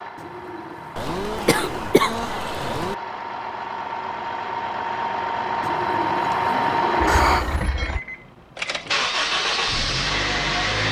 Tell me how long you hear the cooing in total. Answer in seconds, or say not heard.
4 s.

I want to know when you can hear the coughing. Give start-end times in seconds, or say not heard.
0.9-3.0, 7.0-7.8.